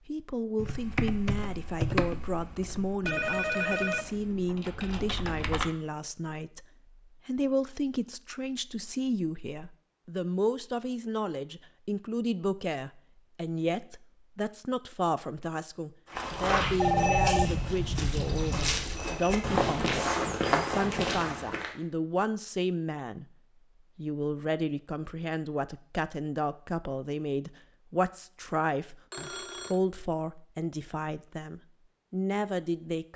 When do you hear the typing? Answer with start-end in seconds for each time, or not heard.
0.6-5.7.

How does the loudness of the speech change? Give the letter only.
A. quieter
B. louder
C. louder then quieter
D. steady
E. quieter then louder
D.